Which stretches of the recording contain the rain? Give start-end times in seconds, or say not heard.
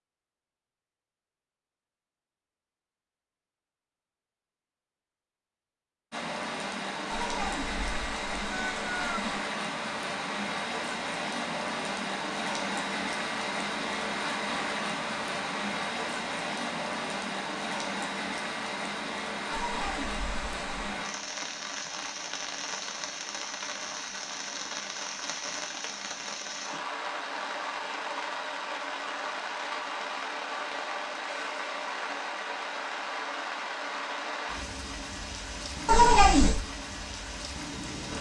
6.1-38.1.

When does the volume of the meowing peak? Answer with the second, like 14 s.
36 s.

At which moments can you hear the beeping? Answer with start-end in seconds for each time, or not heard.
not heard.